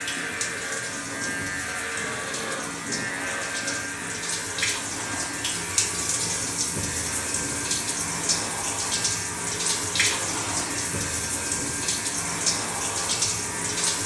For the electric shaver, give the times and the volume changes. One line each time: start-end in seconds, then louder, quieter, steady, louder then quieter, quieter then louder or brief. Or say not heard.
0.0-14.0 quieter.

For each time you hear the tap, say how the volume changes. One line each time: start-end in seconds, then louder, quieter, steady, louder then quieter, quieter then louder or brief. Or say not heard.
0.0-14.0 louder.